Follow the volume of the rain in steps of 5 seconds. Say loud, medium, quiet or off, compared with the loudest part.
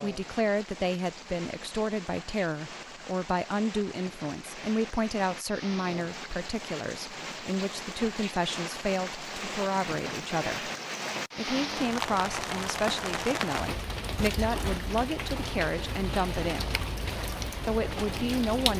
medium, medium, loud, loud.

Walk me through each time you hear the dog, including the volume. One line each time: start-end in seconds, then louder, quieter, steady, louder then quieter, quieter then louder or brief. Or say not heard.
not heard.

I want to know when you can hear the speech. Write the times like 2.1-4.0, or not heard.
0.0-10.7, 11.3-16.7, 17.6-18.7.